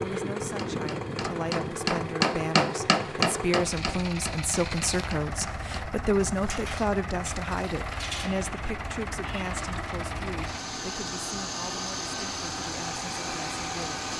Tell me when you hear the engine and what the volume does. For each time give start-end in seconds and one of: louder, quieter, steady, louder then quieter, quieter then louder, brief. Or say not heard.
0.0-14.1 steady.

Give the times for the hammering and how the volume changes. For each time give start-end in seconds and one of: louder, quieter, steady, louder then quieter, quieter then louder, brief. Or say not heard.
0.6-6.0 louder then quieter.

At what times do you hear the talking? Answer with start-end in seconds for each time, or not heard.
0.0-14.1.